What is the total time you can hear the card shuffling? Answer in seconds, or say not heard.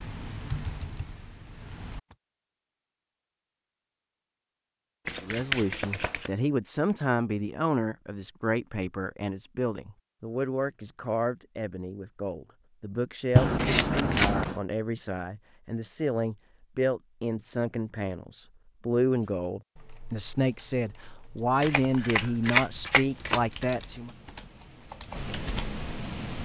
4 s.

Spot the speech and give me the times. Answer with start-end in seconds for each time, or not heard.
5.2-24.1.